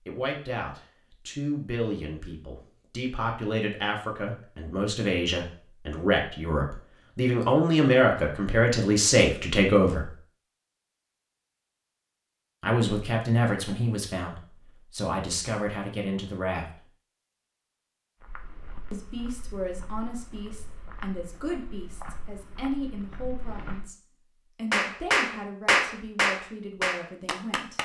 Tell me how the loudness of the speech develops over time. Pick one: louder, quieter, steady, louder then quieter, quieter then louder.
louder then quieter.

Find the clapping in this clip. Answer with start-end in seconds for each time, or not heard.
24.7-27.8.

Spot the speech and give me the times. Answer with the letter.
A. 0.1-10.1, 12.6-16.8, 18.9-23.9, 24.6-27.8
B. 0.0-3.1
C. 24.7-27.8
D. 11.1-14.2
A.